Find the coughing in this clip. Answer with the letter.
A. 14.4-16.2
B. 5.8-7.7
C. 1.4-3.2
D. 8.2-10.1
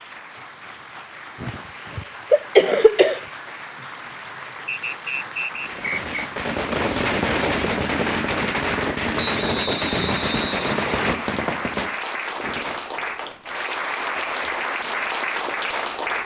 C.